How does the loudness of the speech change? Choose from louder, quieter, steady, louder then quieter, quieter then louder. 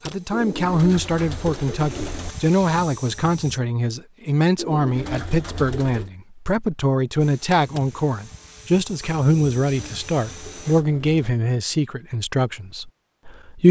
steady.